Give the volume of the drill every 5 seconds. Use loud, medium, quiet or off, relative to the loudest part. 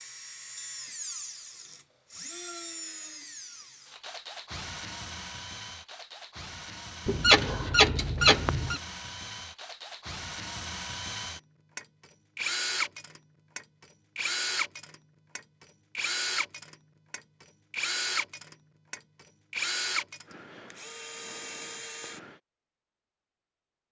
medium, medium, loud, loud, medium.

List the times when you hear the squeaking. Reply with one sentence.
You can hear the squeaking from 7.0 to 8.8 s.